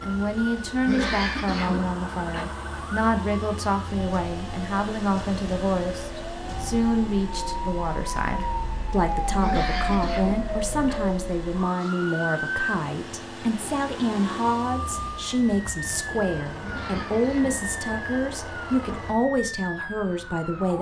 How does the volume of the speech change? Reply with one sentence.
The loudness of the speech stays about the same.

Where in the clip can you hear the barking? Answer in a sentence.
You can't hear the barking here.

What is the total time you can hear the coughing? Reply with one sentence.
The coughing can be heard for 4 seconds in total.